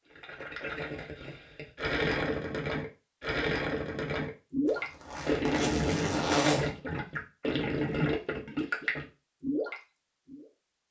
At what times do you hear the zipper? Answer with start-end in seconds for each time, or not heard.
4.7-6.7.